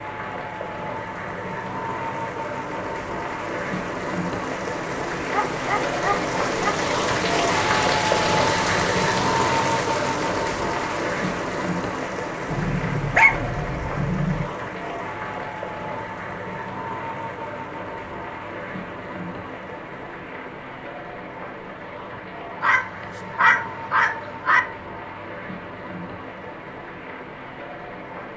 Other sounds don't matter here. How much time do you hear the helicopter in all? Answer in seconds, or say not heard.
not heard.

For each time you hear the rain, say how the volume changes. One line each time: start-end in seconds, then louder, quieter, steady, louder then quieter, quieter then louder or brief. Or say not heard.
0.0-28.3 louder then quieter.